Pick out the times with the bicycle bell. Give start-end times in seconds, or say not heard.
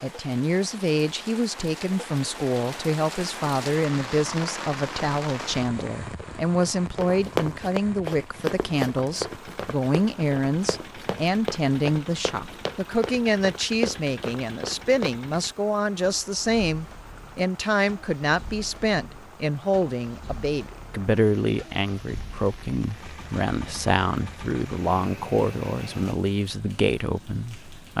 not heard.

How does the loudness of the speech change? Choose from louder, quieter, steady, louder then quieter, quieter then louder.
steady.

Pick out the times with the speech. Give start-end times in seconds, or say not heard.
0.0-27.9.